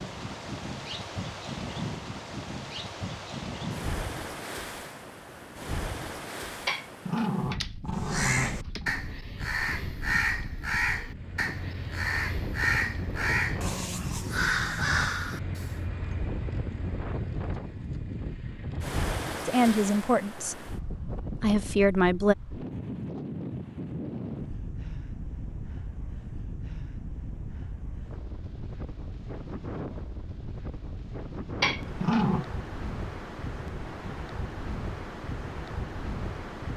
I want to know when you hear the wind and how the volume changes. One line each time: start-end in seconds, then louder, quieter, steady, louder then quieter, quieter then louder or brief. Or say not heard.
0.0-36.7 steady.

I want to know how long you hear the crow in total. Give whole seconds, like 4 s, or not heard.
8 s.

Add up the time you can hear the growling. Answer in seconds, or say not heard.
5 s.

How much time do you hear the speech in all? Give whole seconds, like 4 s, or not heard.
2 s.